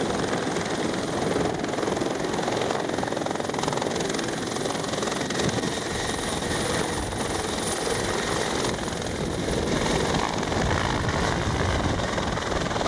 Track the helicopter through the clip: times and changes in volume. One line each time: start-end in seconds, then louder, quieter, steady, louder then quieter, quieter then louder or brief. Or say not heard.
0.0-12.8 steady.